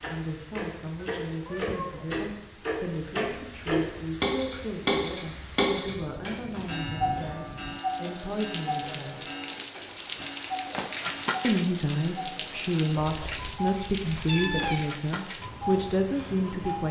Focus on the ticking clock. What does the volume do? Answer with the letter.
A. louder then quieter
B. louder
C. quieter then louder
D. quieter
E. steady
D.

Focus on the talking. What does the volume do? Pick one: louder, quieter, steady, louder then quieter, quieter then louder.
louder.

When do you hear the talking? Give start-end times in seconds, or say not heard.
0.1-9.2, 11.4-16.8.